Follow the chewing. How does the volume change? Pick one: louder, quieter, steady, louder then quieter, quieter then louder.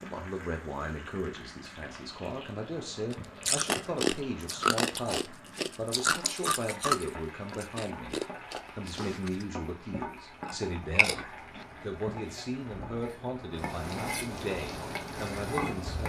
quieter then louder.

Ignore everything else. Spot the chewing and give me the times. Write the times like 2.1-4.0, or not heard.
3.1-12.2.